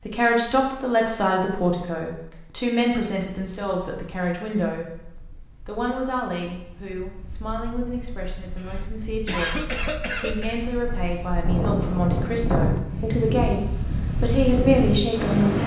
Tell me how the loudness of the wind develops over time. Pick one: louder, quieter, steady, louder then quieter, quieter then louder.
louder.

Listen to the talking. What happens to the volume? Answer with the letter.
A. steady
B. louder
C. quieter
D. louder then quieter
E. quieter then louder
E.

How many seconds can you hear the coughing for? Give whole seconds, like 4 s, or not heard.
2 s.